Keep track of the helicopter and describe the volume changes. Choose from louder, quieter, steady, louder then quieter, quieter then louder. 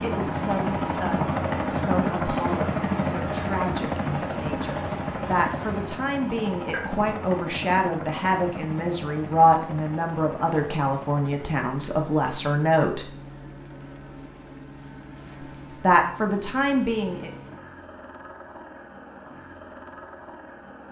quieter.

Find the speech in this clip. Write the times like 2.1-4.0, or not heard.
0.0-13.1, 15.8-17.3.